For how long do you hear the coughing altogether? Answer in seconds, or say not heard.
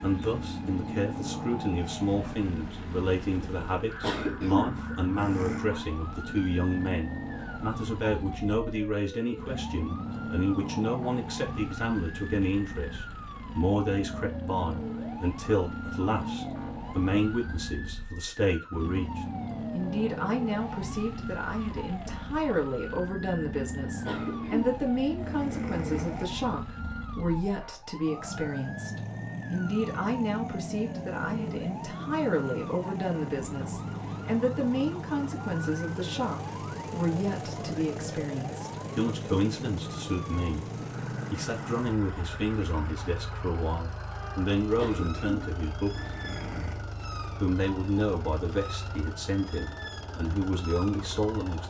6 s.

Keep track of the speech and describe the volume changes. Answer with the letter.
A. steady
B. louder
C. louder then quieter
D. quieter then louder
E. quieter
A.